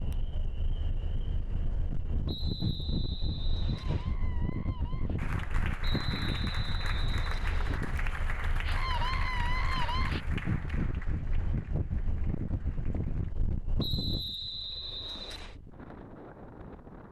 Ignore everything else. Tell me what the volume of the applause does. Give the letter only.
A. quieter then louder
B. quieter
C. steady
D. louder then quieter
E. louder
B.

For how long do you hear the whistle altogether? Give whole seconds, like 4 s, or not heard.
6 s.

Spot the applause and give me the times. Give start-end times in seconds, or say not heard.
5.2-13.3.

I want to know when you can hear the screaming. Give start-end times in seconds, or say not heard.
3.6-5.2, 8.6-10.2.